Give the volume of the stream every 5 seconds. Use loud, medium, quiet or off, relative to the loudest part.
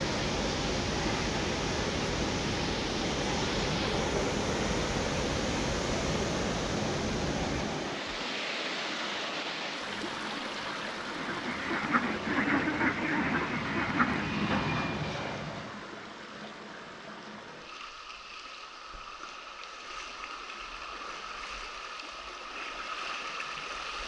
loud, loud, medium, quiet, medium.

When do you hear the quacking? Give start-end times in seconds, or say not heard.
11.1-15.0.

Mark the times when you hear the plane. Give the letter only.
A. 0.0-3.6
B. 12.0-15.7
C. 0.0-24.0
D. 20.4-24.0
B.